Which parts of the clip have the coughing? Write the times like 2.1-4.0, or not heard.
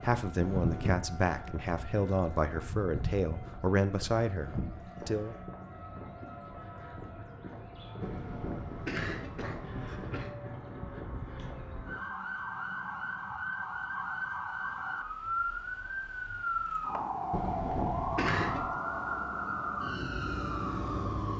0.3-1.0, 8.0-10.3, 17.3-18.7.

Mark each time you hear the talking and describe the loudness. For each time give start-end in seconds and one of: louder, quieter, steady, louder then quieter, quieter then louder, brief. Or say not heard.
0.0-5.3 steady.